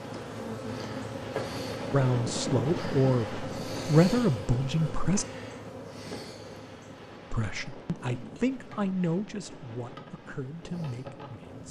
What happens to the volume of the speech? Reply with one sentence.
The volume of the speech goes down.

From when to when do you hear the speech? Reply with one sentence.
The speech can be heard from 1.9 to 5.2 s and from 7.3 to 11.6 s.